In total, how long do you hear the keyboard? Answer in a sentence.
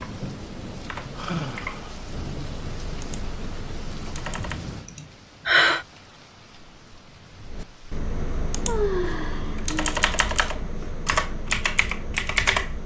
You can hear the keyboard for 10 seconds altogether.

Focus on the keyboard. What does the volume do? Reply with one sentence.
The volume of the keyboard goes up.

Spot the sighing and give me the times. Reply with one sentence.
You can hear the sighing from 1.1 to 1.9 s, from 5.0 to 5.8 s and from 8.7 to 9.8 s.